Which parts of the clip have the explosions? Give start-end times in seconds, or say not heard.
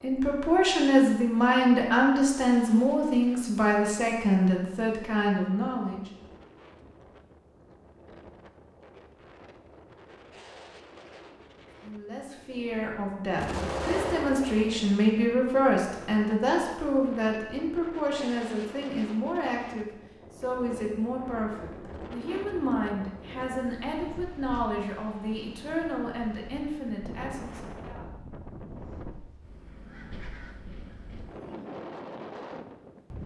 13.3-14.9.